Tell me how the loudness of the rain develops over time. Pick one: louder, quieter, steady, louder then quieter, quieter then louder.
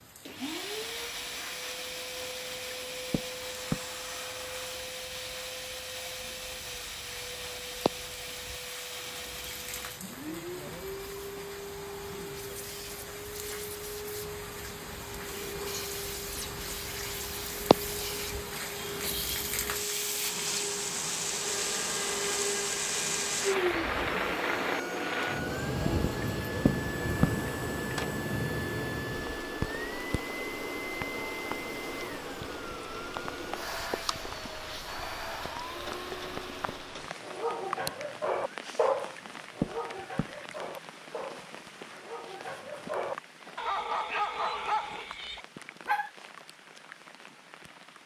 louder then quieter.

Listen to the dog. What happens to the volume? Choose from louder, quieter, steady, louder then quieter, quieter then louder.
quieter then louder.